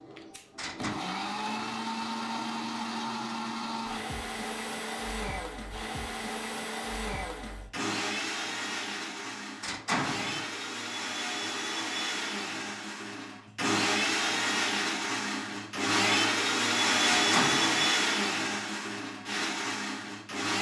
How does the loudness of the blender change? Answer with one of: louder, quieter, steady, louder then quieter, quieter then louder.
louder.